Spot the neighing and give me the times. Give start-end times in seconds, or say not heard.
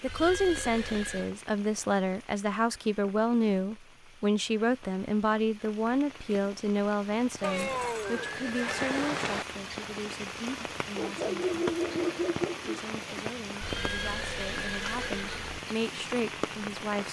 0.1-1.4, 7.4-9.4, 13.6-15.6.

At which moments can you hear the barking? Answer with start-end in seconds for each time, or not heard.
10.9-12.8.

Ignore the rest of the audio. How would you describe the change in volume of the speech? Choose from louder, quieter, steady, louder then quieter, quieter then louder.
quieter then louder.